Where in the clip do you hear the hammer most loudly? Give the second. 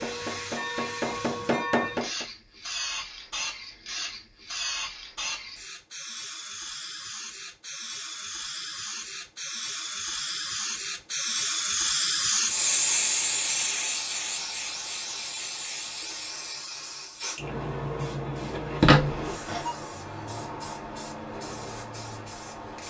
2 s.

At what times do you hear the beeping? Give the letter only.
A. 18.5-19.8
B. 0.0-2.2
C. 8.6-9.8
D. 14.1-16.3
A.